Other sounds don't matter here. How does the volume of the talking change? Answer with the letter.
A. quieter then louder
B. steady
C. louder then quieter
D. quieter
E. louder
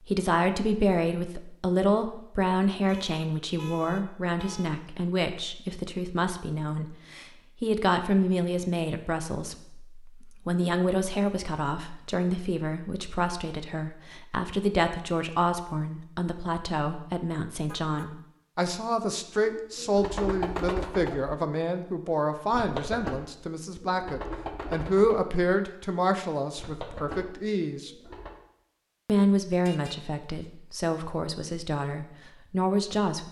B.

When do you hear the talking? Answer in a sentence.
You can hear the talking from 0.1 to 27.9 s and from 29.1 to 33.2 s.